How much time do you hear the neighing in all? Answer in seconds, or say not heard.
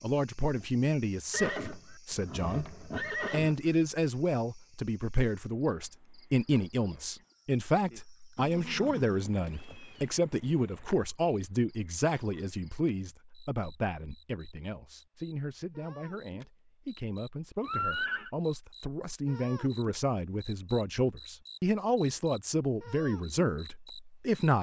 5 s.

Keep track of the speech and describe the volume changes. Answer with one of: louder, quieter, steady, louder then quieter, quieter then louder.
quieter then louder.